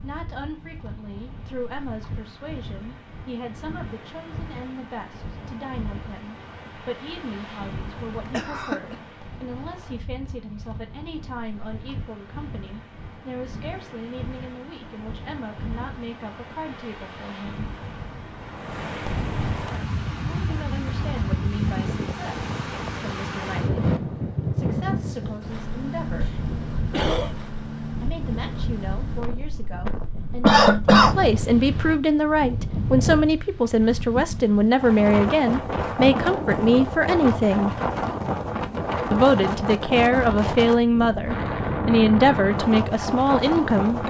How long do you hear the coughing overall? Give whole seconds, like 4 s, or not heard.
3 s.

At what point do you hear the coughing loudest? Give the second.
31 s.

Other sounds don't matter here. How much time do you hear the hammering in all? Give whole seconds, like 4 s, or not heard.
not heard.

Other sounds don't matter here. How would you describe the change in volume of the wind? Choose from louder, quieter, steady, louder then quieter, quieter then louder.
louder.